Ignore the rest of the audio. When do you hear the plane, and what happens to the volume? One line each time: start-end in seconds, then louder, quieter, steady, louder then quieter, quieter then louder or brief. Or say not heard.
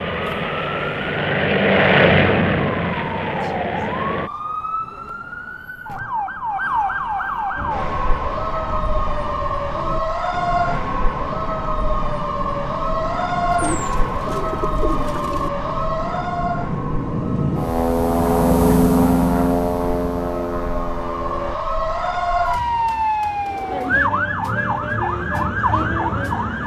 0.0-4.3 louder then quieter
7.5-21.6 louder.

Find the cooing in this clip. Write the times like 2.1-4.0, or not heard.
13.5-15.5.